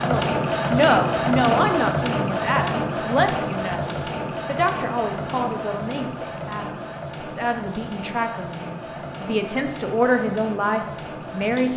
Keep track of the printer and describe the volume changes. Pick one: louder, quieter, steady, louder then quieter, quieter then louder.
quieter.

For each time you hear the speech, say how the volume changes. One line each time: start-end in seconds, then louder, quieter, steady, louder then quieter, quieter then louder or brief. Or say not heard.
0.0-11.7 quieter then louder.